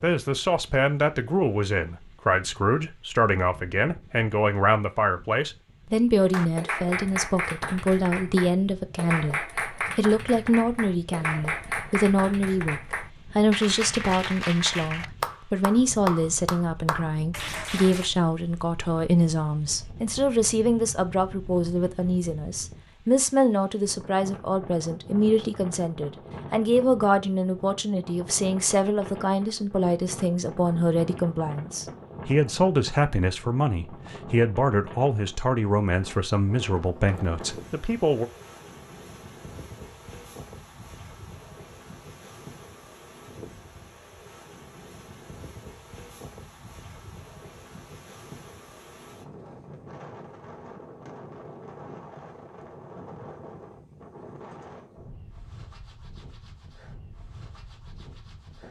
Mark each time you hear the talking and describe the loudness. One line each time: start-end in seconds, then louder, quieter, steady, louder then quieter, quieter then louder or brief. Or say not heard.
0.0-38.2 steady.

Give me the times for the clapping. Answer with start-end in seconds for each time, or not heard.
6.2-18.1.